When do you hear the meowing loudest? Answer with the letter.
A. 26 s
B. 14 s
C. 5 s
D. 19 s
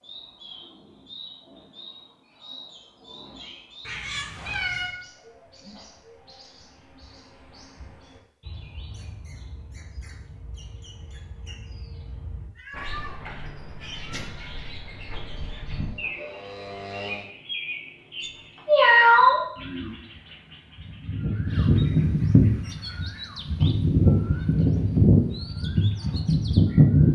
D.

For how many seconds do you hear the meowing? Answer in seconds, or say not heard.
4 s.